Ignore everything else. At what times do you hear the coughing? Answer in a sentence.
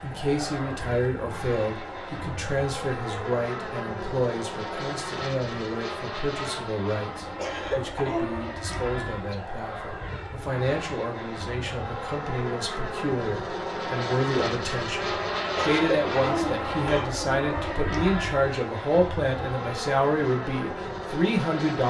The coughing can be heard from 7.3 to 8.3 s and from 15.6 to 17.1 s.